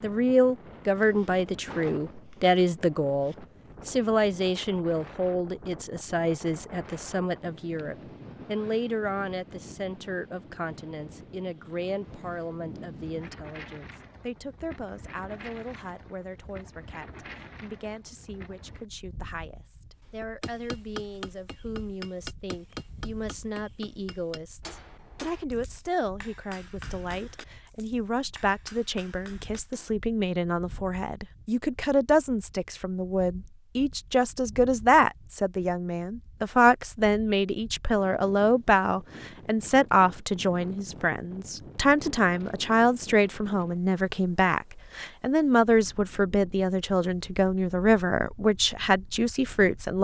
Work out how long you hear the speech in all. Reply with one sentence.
The speech can be heard for 50 seconds in total.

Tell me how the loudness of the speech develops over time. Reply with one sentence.
The loudness of the speech goes down, then up.